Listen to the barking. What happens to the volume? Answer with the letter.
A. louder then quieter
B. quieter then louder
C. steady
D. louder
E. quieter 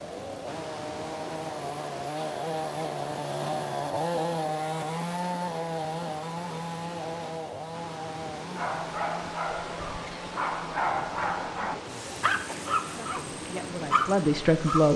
D.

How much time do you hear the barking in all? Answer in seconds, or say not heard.
6 s.